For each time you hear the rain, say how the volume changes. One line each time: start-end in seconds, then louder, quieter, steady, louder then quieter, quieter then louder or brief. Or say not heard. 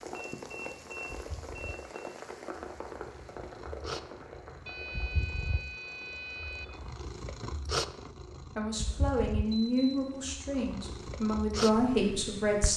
0.0-6.8 quieter.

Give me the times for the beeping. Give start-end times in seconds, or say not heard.
0.1-2.0, 4.7-6.7, 9.5-10.4.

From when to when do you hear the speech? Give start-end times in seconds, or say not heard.
8.6-12.7.